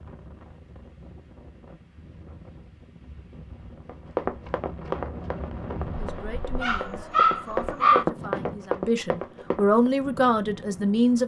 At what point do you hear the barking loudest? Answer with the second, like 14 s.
8 s.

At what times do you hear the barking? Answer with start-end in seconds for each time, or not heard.
6.6-8.1.